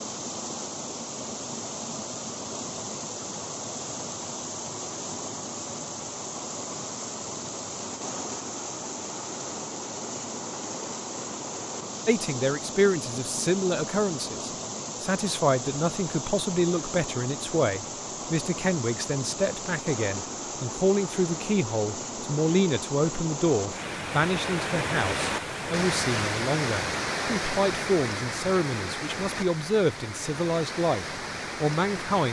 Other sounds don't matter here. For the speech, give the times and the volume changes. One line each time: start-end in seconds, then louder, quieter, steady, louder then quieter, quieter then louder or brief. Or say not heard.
12.1-32.2 steady.